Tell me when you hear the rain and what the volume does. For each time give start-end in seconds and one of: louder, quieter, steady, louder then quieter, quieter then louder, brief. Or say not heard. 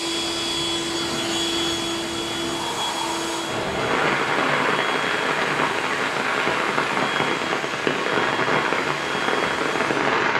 0.0-10.3 louder.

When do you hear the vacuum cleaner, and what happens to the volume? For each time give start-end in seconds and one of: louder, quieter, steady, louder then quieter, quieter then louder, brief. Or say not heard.
0.0-10.1 quieter.